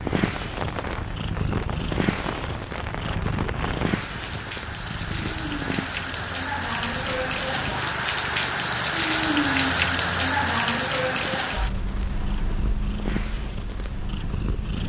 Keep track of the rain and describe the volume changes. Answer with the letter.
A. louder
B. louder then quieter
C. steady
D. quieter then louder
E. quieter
B.